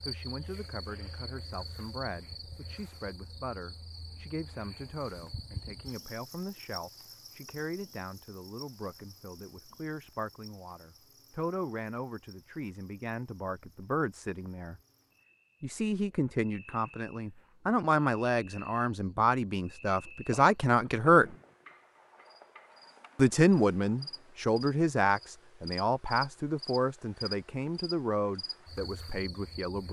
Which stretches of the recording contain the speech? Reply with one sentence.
You can hear the speech from 0.0 to 14.8 s, from 15.6 to 21.2 s and from 23.1 to 29.8 s.